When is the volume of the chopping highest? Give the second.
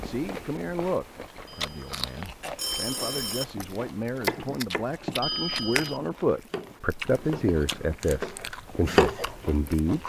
9 s.